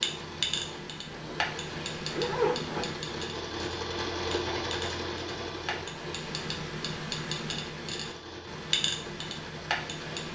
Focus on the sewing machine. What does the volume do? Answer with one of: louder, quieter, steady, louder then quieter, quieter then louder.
louder then quieter.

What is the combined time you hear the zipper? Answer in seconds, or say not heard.
2 s.